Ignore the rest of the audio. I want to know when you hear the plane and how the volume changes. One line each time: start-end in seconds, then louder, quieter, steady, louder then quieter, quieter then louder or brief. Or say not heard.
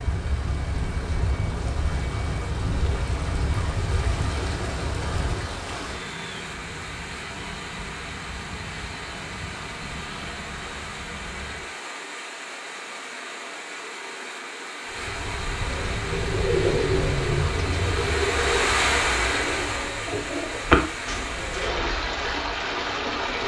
0.0-11.7 quieter
14.8-23.4 quieter.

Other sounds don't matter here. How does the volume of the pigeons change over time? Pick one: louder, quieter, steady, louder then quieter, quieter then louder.
quieter then louder.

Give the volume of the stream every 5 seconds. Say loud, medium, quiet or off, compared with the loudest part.
medium, medium, medium, loud, loud.